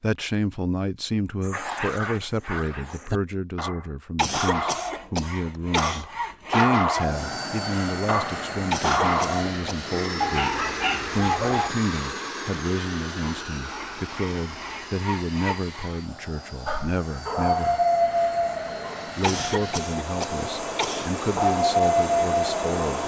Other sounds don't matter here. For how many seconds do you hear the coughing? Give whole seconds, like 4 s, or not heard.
5 s.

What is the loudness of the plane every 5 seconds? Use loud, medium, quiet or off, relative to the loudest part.
off, loud, loud, medium, loud.